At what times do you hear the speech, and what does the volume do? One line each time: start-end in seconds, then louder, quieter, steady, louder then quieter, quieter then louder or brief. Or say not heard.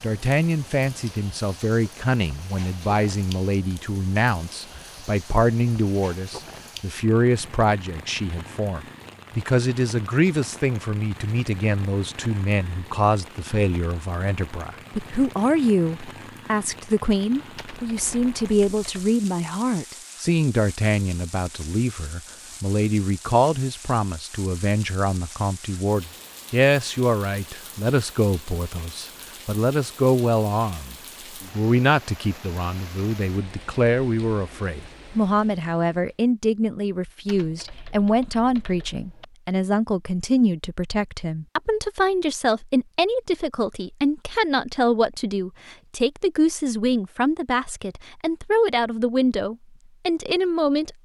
0.0-51.0 steady.